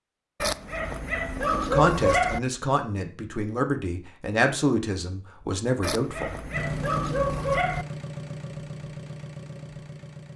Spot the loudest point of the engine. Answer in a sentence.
The volume of the engine peaks at 7 seconds.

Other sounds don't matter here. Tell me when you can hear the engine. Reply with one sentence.
The engine can be heard from 6.5 to 10.3 s.